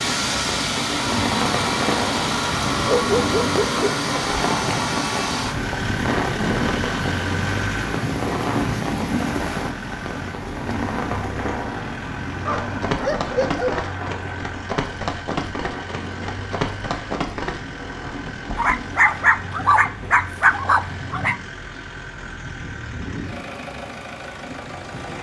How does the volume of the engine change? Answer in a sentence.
The loudness of the engine goes down.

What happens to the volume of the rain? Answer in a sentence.
The volume of the rain goes down.